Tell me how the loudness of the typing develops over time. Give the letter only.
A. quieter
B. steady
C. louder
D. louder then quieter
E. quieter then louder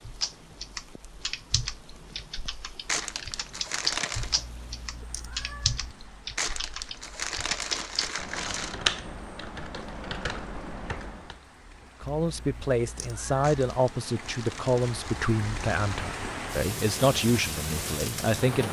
D.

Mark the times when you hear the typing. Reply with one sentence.
You can hear the typing from 0.1 to 11.4 s.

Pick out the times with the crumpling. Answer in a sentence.
The crumpling can be heard from 2.9 to 4.3 s, from 6.3 to 8.8 s and from 13.4 to 16.1 s.